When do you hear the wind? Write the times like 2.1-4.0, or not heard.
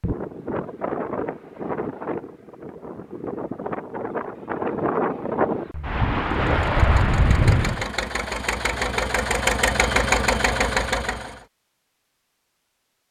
0.0-7.8.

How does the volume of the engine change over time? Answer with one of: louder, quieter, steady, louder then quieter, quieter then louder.
louder.